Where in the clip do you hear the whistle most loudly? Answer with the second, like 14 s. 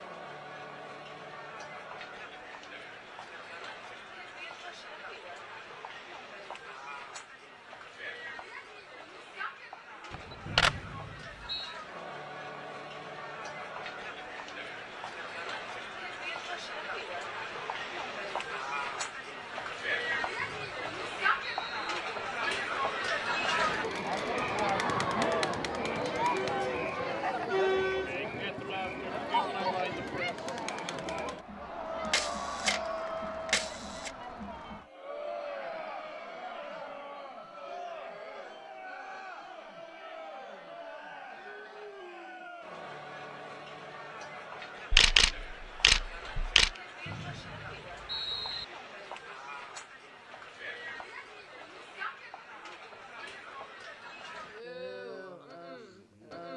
48 s.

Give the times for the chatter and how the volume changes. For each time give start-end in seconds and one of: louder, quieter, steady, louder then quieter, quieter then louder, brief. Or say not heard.
0.0-56.5 louder then quieter.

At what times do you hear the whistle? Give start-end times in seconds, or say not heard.
10.4-11.8, 20.4-22.0, 47.0-48.6.